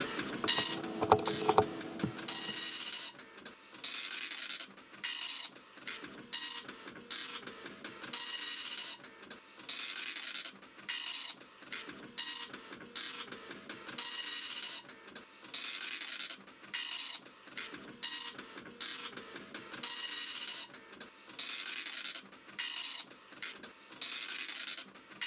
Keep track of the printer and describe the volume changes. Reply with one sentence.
The loudness of the printer stays about the same.